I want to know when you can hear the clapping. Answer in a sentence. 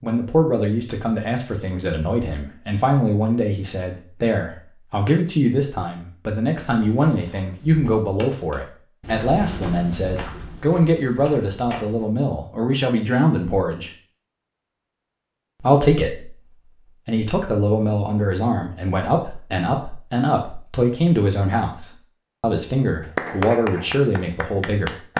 The clapping can be heard from 23.0 to 25.1 s.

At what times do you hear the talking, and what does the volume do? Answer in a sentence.
You can hear the talking from 0.0 to 13.9 s, at a steady volume; and from 15.6 to 25.1 s, at a steady volume.